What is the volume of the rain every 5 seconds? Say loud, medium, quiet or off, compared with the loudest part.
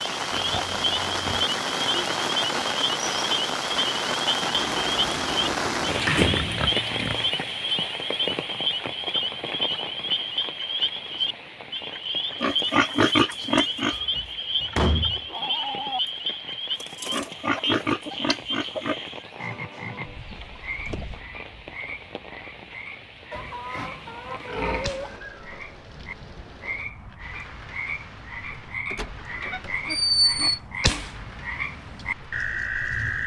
loud, loud, quiet, quiet, quiet, quiet, quiet.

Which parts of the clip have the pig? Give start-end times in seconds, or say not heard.
0.3-1.5, 6.2-7.3, 12.4-13.9, 17.1-19.1, 23.3-25.2, 29.4-31.1.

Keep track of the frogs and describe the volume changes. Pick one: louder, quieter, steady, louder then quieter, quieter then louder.
quieter then louder.